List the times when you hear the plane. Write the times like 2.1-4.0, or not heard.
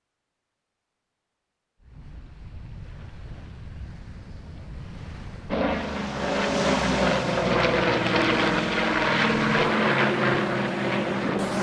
5.5-11.5.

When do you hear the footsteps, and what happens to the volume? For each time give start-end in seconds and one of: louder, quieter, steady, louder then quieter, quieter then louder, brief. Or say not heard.
not heard.